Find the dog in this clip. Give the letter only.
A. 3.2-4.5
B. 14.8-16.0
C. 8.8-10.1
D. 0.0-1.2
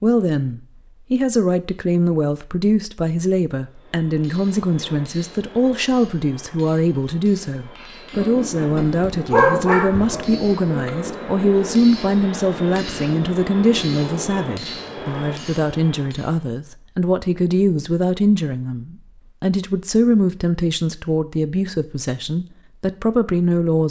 C.